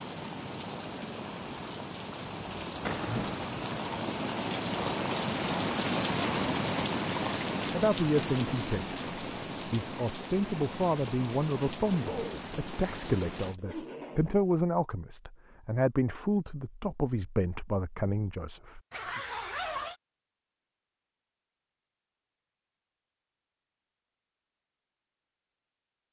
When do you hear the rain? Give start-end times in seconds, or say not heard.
0.0-13.6.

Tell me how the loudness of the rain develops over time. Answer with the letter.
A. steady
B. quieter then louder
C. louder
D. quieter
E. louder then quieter
E.